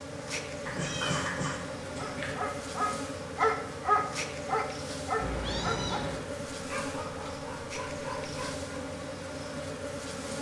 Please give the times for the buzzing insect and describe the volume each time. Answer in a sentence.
You can hear the buzzing insect from 0.0 to 10.3 s, at a steady volume.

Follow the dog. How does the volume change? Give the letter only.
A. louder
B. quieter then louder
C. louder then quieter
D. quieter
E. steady
D.